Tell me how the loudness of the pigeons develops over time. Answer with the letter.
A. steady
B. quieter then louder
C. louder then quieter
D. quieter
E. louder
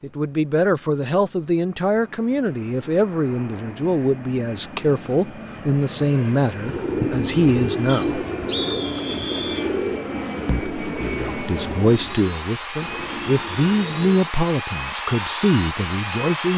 D.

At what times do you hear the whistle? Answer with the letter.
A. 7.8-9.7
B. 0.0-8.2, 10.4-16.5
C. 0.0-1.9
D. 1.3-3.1
A.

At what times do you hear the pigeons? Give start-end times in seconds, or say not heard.
6.5-14.3.